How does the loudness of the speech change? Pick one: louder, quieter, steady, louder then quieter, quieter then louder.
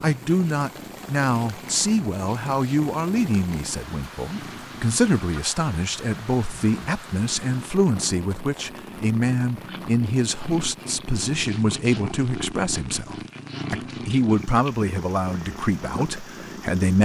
steady.